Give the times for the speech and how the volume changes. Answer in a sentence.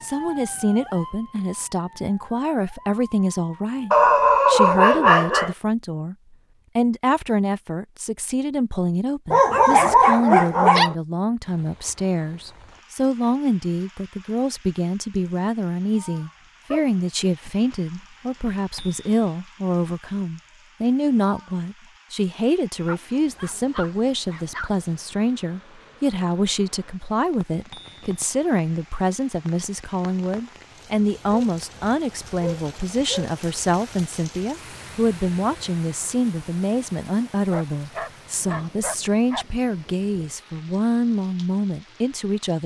The speech can be heard from 0.0 to 6.2 s, at a steady volume; and from 6.8 to 42.6 s, at a steady volume.